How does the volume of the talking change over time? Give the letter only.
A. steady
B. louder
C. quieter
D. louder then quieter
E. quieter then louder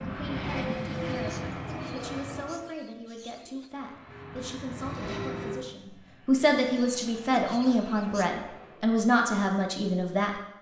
B.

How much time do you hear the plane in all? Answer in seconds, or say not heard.
8 s.